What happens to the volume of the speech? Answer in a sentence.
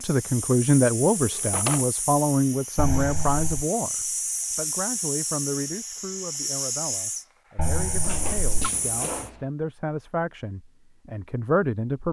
The volume of the speech goes down, then up.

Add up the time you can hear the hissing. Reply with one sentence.
You can hear the hissing for 9 seconds altogether.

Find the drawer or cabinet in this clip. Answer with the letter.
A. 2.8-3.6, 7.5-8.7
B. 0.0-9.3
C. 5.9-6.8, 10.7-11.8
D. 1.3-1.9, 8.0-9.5
D.